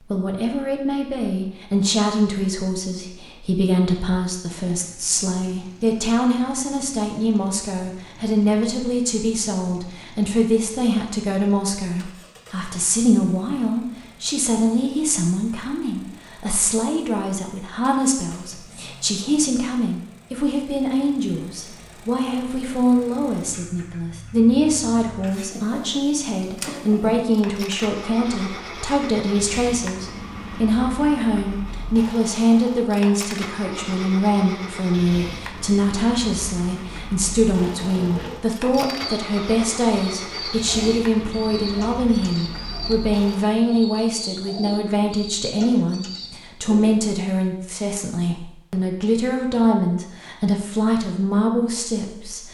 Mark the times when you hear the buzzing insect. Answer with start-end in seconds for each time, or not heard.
not heard.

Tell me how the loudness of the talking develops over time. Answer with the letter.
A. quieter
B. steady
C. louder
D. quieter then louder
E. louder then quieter
B.